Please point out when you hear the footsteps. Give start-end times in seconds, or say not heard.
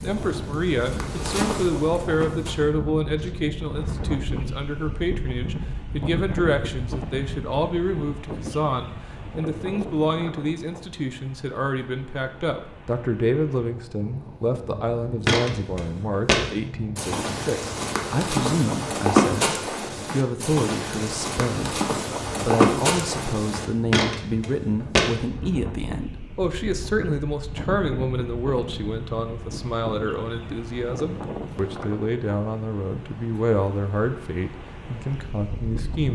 0.0-2.6, 15.2-25.1.